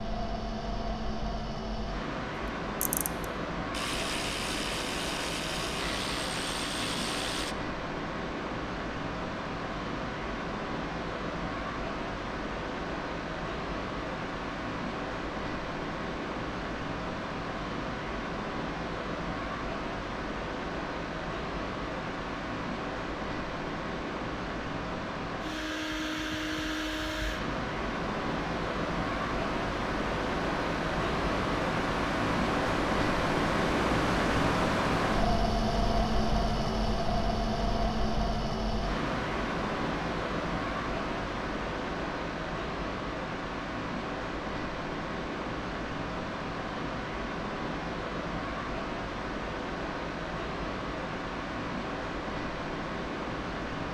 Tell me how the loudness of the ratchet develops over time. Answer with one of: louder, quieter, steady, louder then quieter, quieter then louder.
steady.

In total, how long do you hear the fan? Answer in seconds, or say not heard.
54 s.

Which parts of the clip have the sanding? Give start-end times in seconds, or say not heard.
not heard.